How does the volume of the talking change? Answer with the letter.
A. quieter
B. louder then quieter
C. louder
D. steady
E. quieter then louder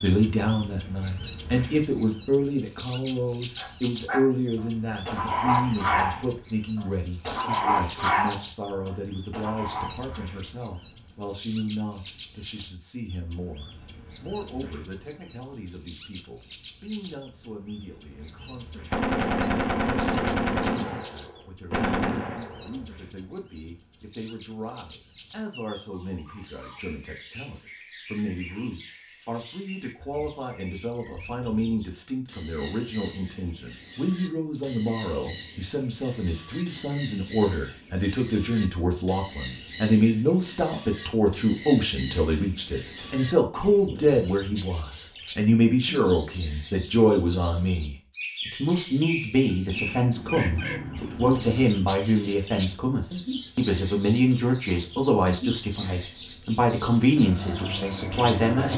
E.